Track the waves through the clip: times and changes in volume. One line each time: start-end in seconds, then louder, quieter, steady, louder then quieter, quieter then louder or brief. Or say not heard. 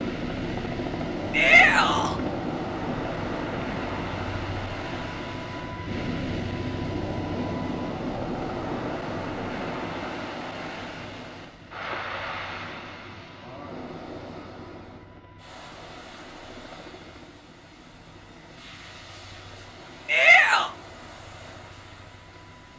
0.0-22.7 quieter.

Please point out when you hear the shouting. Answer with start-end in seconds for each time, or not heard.
1.3-2.2, 20.1-20.7.